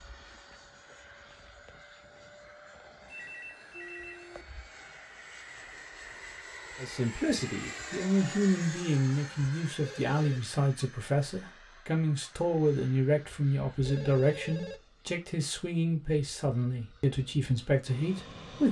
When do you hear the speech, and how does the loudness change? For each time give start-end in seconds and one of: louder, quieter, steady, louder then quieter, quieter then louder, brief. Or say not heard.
6.8-18.6 steady.